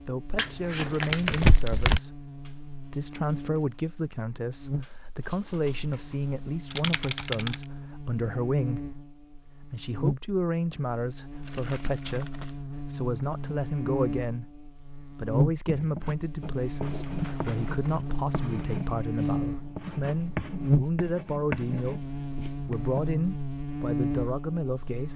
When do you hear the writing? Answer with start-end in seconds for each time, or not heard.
15.7-23.0.